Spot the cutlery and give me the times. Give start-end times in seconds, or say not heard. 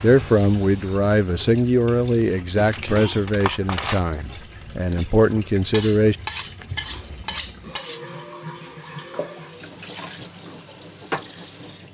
2.3-8.0.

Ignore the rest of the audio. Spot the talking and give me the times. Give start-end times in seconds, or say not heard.
0.0-6.2.